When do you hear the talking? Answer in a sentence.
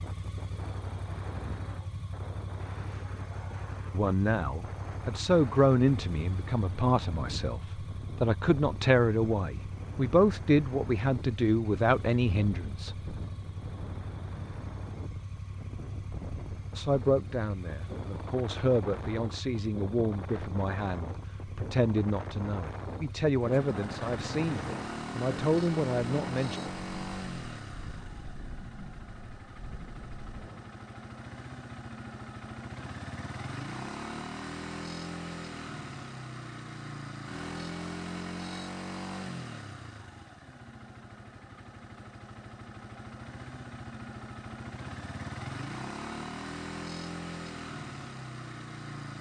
The talking can be heard from 3.9 to 13.3 s and from 16.8 to 26.6 s.